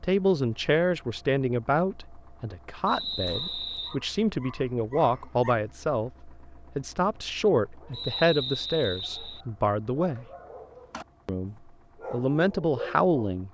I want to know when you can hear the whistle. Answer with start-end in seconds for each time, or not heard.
2.9-4.0, 7.9-9.4.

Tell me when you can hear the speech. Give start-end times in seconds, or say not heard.
0.0-10.2, 11.2-13.4.